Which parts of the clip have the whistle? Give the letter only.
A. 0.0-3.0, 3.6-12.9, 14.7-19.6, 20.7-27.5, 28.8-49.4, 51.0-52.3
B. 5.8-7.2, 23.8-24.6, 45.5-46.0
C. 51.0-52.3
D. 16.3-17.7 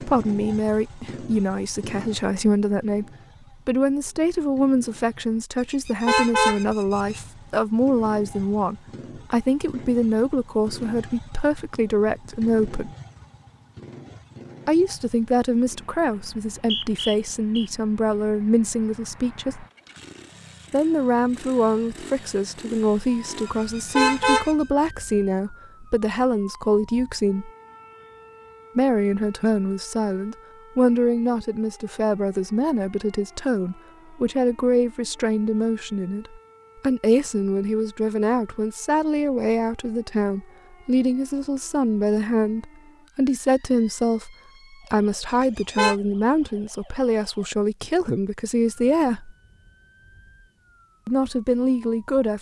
D.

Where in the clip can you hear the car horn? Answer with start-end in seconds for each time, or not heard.
5.8-7.2, 23.8-24.6, 45.5-46.0.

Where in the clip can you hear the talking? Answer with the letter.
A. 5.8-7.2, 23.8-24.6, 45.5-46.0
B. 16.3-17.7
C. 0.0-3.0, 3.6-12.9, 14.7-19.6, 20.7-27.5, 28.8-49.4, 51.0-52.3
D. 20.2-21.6
C.